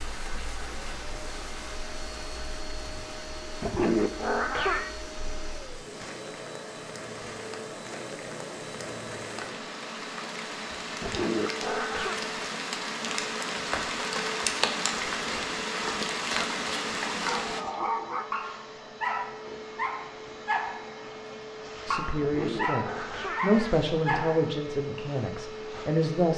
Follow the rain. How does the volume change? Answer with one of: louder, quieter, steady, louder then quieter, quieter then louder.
louder.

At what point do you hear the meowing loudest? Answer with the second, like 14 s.
4 s.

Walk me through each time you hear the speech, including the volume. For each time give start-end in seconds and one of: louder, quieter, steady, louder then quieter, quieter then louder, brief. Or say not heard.
21.9-26.3 louder then quieter.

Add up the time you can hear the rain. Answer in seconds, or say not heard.
18 s.